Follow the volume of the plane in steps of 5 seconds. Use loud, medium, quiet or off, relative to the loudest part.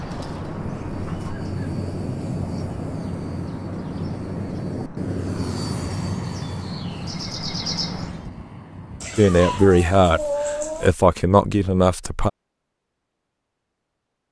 loud, loud, off.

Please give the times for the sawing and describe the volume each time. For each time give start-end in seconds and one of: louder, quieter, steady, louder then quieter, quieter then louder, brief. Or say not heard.
not heard.